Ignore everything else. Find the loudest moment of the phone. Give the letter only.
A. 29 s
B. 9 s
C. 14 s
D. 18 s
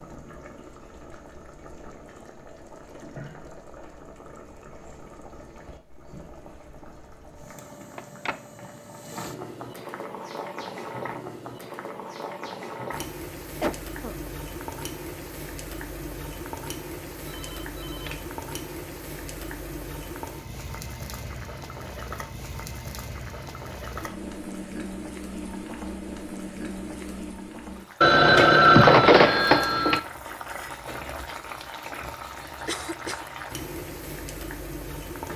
A.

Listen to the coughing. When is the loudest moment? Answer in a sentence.
The volume of the coughing peaks at 14 seconds.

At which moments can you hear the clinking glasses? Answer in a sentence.
You can't hear the clinking glasses here.